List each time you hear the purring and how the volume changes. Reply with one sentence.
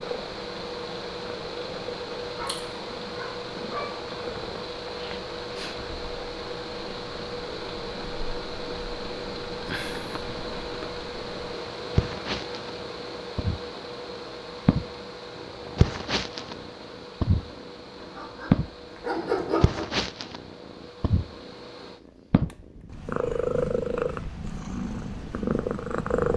You can hear the purring from 0.0 to 26.3 s, getting louder.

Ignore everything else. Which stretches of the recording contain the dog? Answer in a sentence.
The dog can be heard from 2.4 to 3.9 s and from 18.0 to 19.9 s.